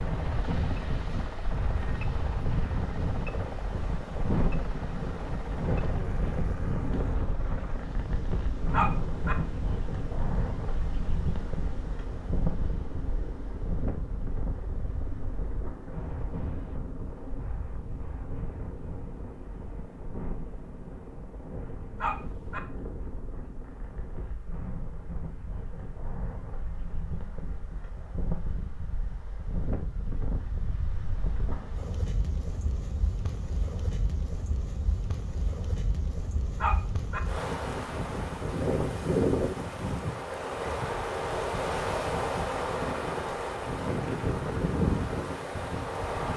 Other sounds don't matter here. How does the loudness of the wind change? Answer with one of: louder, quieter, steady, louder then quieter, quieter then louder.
quieter then louder.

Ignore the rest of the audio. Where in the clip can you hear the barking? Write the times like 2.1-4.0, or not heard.
8.7-9.3, 21.9-22.6, 36.5-37.2.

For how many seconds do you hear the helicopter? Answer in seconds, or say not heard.
24 s.